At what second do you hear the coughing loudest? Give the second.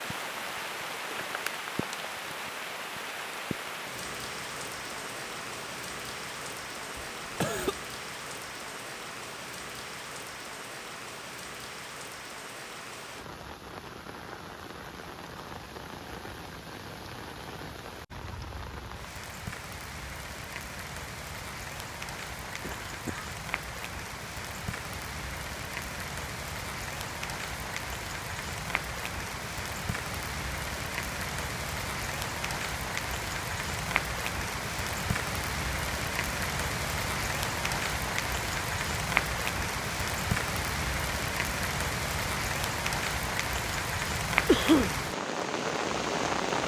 45 s.